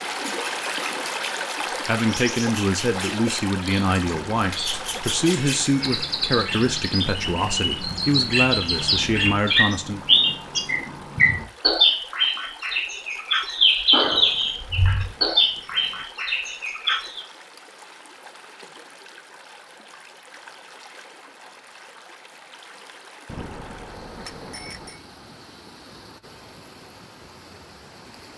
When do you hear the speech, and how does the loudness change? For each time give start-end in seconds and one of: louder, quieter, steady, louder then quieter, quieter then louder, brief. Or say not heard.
1.9-10.0 steady.